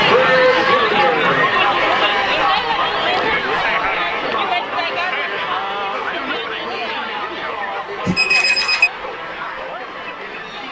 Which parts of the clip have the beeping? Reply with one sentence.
You can hear the beeping from 8.1 to 8.9 s.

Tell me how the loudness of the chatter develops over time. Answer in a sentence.
The volume of the chatter goes down.